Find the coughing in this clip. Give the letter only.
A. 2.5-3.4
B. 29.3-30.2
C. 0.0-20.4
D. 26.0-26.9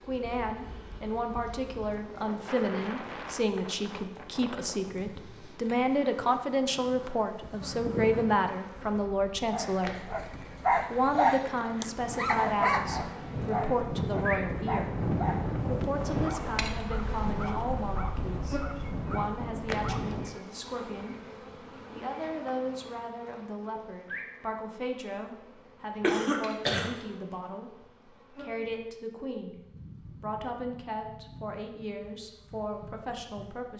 D.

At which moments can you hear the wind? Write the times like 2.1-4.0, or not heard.
0.0-20.4.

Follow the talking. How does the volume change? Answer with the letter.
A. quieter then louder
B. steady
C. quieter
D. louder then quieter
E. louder
C.